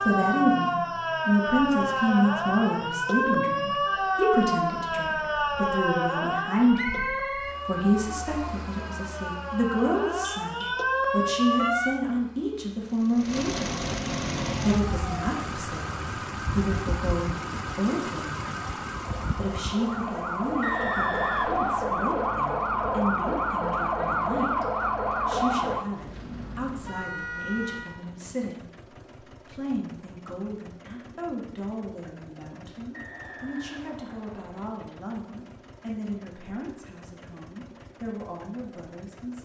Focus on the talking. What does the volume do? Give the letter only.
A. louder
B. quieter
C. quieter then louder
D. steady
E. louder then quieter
B.